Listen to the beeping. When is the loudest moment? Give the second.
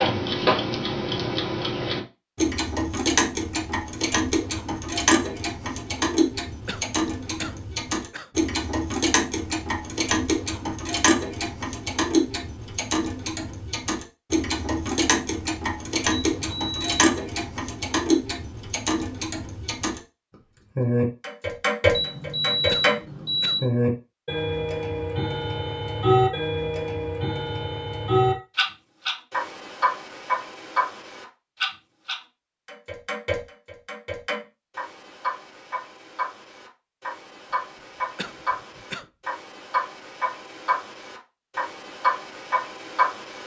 23 s.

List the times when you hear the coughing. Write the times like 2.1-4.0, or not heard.
6.7-8.3, 22.7-23.6, 38.1-39.1.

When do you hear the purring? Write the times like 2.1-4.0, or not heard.
not heard.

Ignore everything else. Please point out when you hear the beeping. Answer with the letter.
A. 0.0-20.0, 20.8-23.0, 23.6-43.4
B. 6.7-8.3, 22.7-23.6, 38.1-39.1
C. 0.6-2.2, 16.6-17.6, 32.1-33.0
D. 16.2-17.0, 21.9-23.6
D.